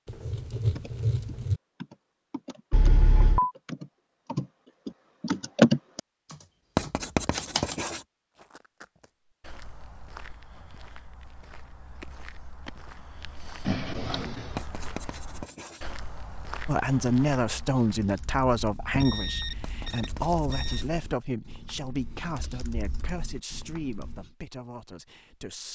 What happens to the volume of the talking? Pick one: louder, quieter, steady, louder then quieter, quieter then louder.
quieter.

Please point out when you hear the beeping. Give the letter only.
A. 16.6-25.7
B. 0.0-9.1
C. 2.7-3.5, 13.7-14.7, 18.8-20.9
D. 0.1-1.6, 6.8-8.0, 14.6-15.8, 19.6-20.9
C.